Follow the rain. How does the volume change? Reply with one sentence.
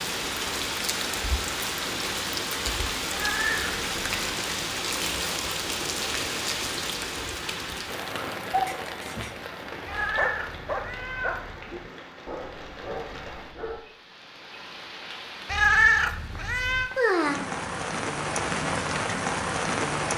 The volume of the rain goes down, then up.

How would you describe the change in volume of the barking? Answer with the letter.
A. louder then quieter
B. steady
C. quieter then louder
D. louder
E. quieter
A.